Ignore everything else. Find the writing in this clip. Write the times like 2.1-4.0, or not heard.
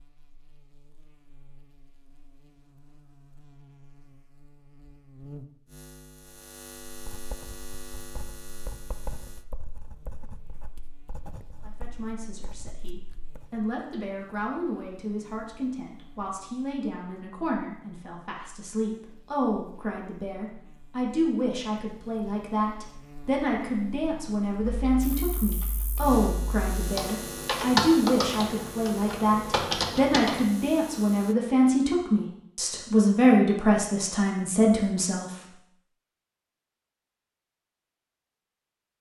6.9-13.7.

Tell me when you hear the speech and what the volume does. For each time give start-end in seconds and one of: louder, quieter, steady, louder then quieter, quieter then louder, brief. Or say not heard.
11.6-35.3 louder.